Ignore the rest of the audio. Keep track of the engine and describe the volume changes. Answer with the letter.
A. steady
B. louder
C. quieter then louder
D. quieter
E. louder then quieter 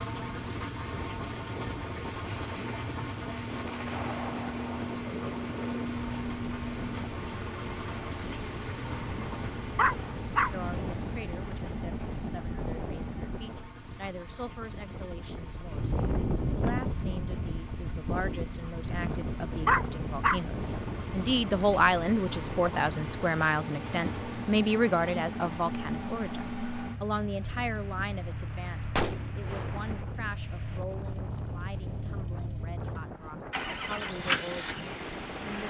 C.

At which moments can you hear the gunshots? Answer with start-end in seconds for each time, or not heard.
3.6-4.7, 28.9-30.1.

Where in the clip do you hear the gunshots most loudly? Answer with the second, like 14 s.
29 s.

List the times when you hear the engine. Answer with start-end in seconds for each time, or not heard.
0.0-35.6.